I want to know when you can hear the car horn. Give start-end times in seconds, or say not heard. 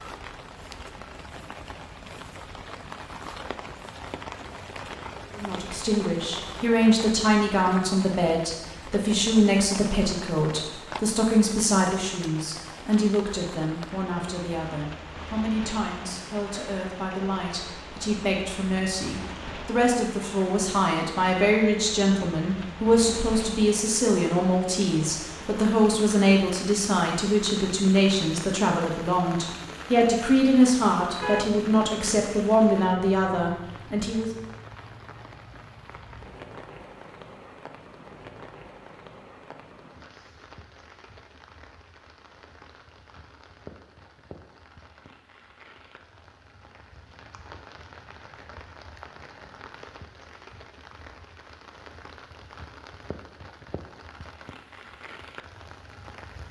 31.2-32.4.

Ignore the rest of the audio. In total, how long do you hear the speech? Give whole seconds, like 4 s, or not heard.
29 s.